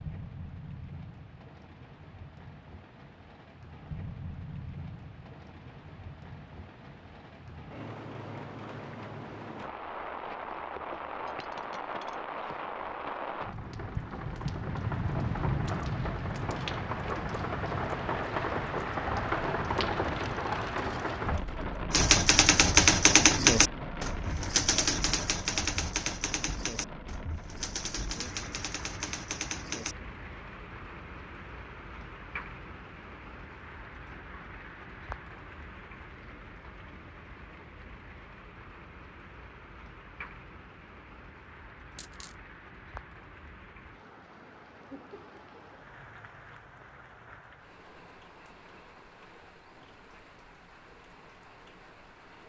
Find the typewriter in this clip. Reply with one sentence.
You can hear the typewriter from 21.9 to 29.9 s.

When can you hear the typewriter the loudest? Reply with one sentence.
The volume of the typewriter peaks at 23 seconds.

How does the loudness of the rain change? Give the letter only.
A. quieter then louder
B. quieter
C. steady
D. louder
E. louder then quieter
E.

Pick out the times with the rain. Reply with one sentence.
The rain can be heard from 0.0 to 52.4 s.